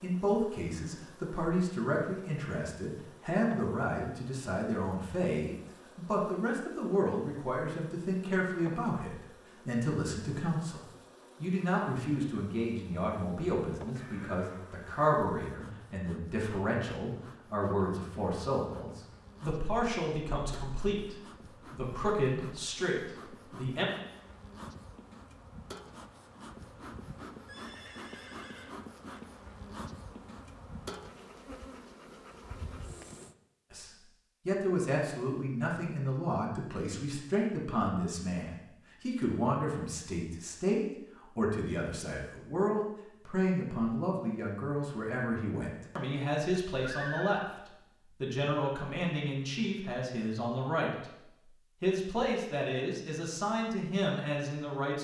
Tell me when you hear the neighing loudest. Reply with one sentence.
The loudest moment of the neighing is at 47 seconds.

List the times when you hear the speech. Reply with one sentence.
The speech can be heard from 0.0 to 10.8 s, from 11.4 to 23.9 s, from 33.7 to 51.0 s and from 51.8 to 55.0 s.